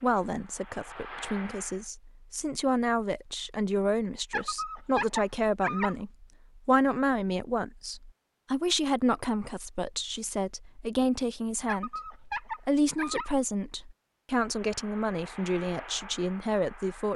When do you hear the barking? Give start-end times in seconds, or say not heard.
4.3-6.0, 11.7-13.3.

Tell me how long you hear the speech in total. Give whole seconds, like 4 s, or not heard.
17 s.